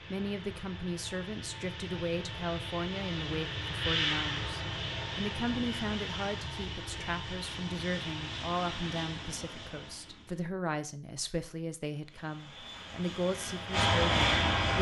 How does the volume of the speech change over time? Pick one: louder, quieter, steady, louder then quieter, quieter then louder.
steady.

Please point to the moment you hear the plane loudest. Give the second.
14 s.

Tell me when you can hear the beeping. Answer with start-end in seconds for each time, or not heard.
not heard.